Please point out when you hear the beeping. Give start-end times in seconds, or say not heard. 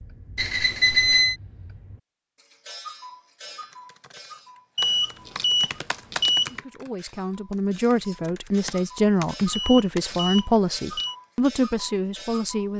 0.3-1.4, 4.8-6.5, 9.5-11.2.